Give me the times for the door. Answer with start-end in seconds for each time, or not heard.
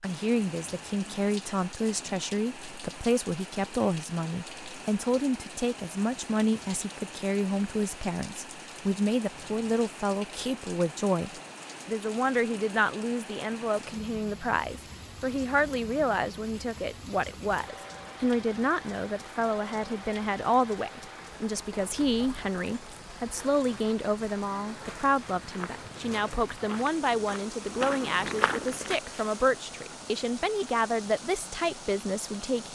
not heard.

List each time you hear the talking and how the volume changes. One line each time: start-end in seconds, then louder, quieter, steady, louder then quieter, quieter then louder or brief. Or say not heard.
0.0-32.6 steady.